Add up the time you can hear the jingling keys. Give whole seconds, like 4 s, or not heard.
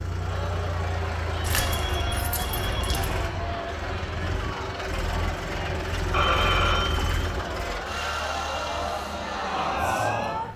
2 s.